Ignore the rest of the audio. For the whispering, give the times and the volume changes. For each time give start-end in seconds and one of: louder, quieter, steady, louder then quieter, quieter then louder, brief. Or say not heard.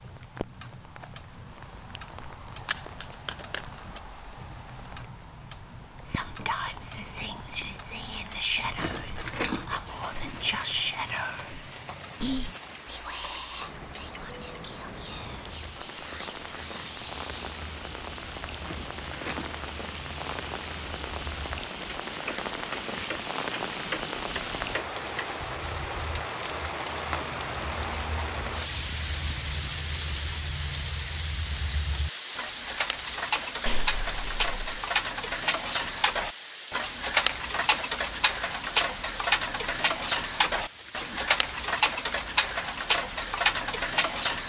6.0-17.4 quieter.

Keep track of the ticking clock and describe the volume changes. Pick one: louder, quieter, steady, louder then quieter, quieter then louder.
louder.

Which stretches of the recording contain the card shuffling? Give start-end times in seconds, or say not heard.
2.6-3.8, 33.6-34.8.